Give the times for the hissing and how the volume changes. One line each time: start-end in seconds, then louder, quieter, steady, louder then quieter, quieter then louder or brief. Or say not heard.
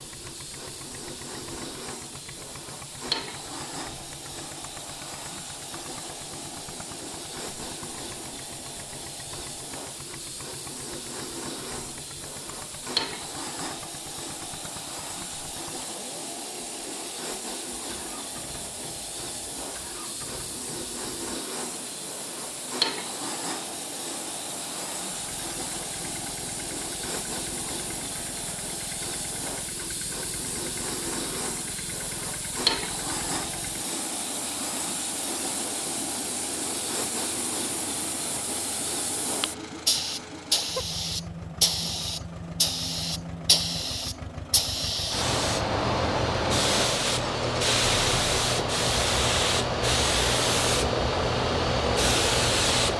0.0-52.9 louder.